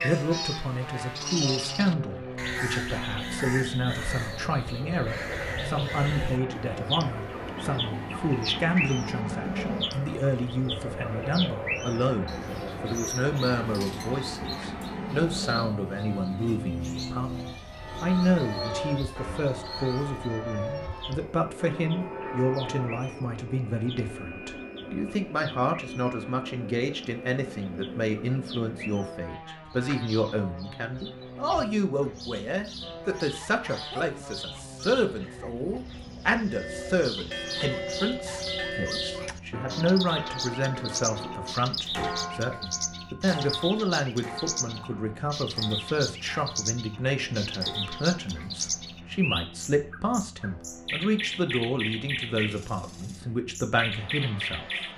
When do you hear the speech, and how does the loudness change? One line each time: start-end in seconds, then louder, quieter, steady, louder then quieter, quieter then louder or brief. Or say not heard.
0.0-54.9 steady.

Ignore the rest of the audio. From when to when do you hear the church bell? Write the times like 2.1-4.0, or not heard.
17.8-23.1, 36.5-48.5.